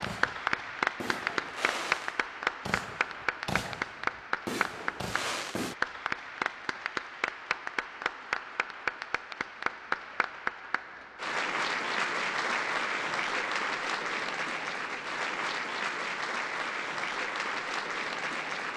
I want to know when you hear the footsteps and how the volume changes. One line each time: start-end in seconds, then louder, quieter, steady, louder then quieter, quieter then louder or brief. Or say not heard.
not heard.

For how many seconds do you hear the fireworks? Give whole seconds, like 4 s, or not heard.
6 s.